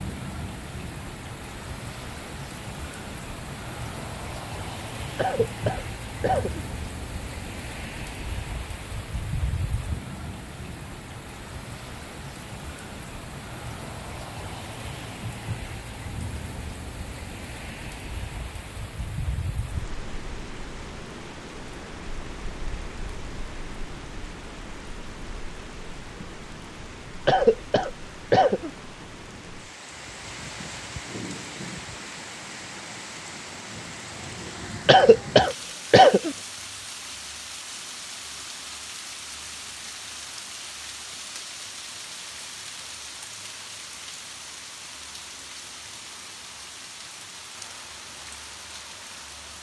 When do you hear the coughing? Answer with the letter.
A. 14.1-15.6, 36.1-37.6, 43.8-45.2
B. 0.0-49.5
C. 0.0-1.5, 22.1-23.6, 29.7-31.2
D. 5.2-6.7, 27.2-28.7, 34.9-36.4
D.